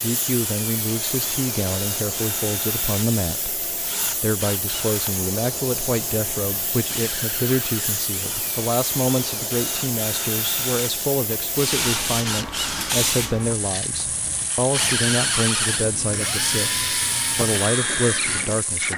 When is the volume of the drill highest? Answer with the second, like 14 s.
15 s.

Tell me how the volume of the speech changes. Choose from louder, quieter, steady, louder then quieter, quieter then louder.
steady.